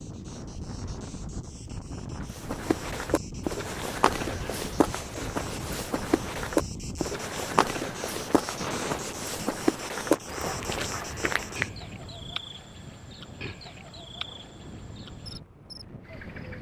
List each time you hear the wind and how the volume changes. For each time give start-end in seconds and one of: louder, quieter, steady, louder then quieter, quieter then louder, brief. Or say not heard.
0.0-16.5 quieter.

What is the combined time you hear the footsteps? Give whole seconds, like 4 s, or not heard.
9 s.